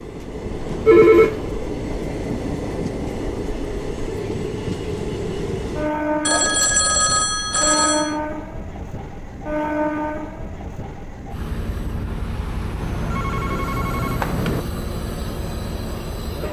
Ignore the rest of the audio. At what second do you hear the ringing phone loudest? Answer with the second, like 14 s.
1 s.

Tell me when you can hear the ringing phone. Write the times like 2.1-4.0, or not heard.
0.8-1.5, 6.2-8.2, 12.8-14.6.